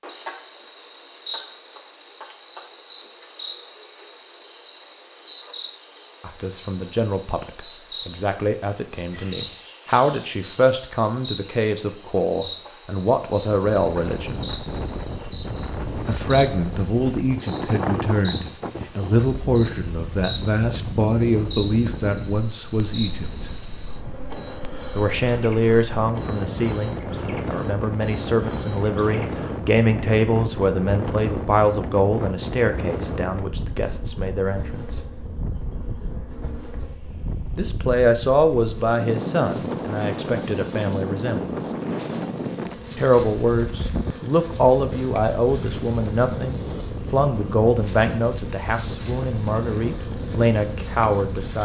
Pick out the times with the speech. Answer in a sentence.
You can hear the speech from 6.2 to 14.4 s, from 16.1 to 23.4 s, from 24.9 to 35.0 s, from 37.5 to 41.7 s and from 43.0 to 51.6 s.